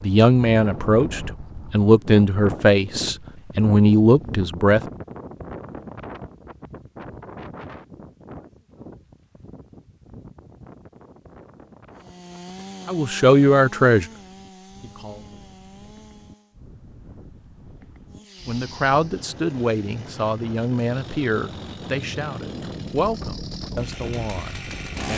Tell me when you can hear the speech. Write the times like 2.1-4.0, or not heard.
0.0-4.8, 12.8-15.2, 18.4-25.1.